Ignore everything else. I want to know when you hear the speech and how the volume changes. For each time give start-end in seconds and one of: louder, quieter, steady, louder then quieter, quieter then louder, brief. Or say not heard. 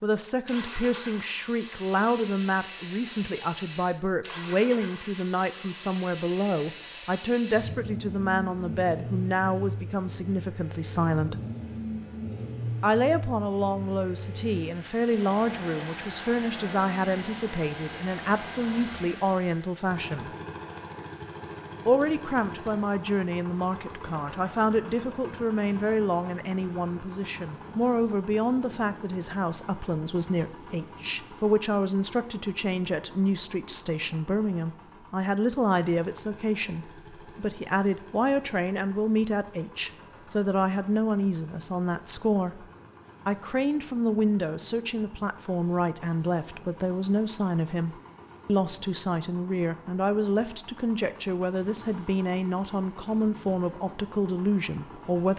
0.0-11.3 steady
12.8-20.3 steady
21.9-42.6 steady
43.2-55.3 steady.